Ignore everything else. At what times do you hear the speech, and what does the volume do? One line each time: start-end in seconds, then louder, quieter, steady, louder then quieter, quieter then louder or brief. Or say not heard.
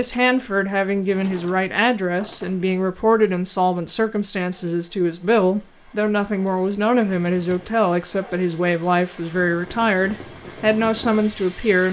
0.0-11.8 steady.